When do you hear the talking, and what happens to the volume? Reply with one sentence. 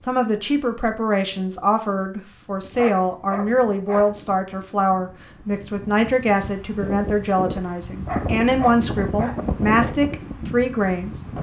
The talking can be heard from 0.1 to 11.2 s, at a steady volume.